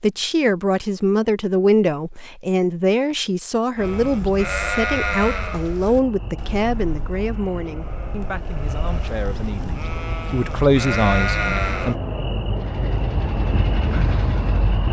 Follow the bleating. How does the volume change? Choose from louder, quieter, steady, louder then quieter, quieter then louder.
quieter then louder.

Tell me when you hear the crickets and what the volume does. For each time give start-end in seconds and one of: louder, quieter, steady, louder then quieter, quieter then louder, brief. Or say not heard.
5.8-14.8 louder.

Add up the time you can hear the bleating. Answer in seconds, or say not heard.
8 s.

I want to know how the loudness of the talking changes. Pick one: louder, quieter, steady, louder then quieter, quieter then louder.
quieter then louder.